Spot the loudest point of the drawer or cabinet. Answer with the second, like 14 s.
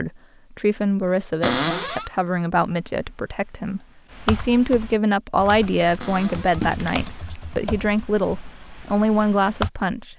2 s.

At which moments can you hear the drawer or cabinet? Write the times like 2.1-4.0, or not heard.
1.4-2.1, 6.0-6.7.